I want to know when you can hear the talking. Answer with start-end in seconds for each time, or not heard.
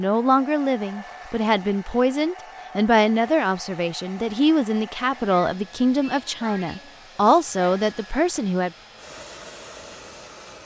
0.0-8.7.